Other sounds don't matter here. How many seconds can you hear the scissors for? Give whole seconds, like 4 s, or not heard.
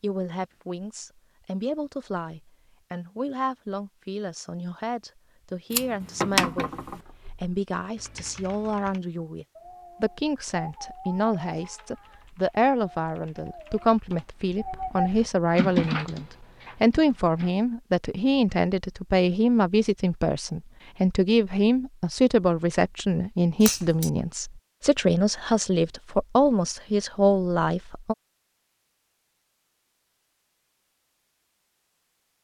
2 s.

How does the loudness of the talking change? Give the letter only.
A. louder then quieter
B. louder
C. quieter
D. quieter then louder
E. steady
B.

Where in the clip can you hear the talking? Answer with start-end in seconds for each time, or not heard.
0.0-28.1.